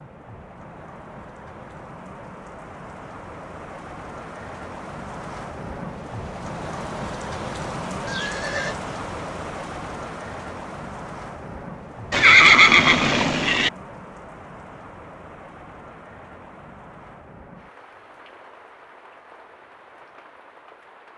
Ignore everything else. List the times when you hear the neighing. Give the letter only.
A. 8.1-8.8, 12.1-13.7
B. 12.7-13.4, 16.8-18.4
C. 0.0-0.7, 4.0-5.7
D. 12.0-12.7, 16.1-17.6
A.